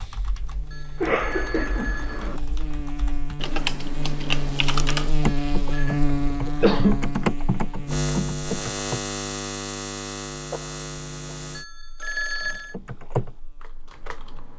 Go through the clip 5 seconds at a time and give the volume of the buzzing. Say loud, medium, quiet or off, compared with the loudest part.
medium, loud, medium.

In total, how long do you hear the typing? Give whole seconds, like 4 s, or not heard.
11 s.